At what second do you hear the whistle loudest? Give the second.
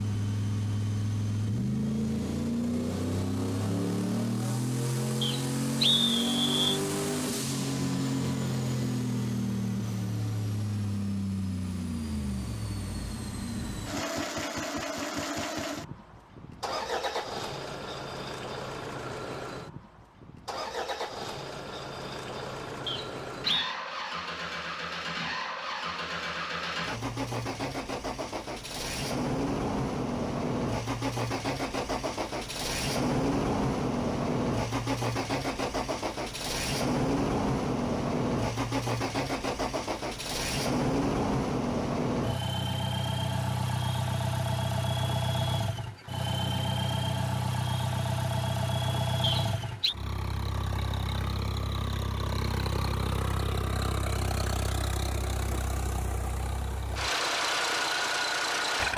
6 s.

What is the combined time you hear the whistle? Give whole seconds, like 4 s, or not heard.
3 s.